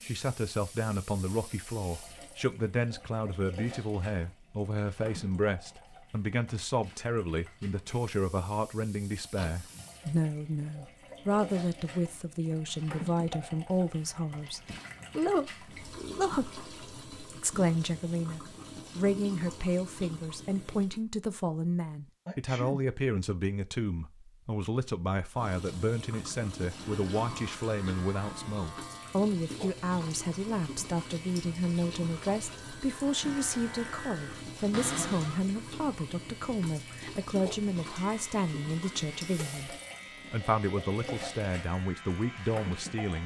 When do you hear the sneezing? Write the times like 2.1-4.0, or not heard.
9.3-9.9, 22.2-22.8, 39.2-39.6.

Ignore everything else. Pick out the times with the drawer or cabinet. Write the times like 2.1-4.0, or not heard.
34.7-35.4.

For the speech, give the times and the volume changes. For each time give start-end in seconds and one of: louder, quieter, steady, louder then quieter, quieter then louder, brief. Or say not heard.
0.0-43.2 steady.